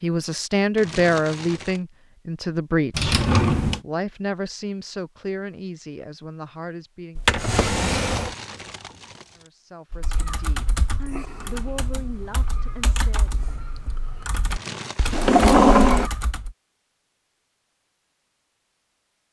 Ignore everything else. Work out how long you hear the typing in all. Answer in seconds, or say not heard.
7 s.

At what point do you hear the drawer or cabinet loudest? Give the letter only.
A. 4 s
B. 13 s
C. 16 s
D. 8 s
C.